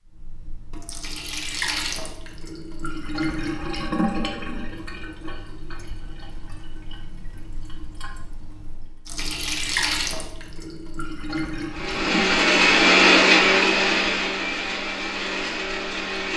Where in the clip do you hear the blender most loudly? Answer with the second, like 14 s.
13 s.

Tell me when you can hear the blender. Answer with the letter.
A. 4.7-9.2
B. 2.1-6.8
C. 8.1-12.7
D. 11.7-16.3
D.